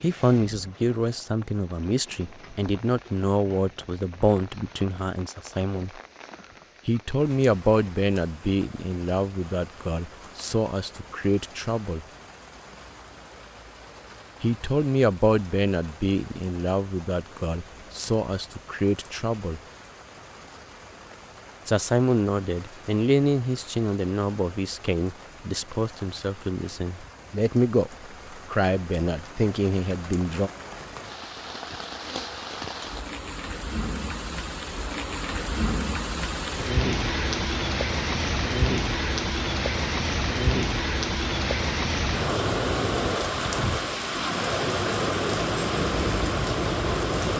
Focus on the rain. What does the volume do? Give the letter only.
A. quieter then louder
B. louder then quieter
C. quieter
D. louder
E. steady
D.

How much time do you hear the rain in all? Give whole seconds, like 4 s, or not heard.
47 s.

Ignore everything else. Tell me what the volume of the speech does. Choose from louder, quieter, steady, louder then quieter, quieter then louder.
steady.